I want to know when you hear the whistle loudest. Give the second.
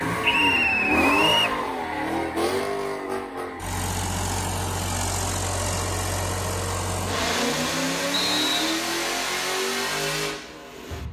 1 s.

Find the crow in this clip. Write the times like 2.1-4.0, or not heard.
0.0-3.8.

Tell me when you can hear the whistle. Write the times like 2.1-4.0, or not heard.
0.3-1.6, 8.1-8.7.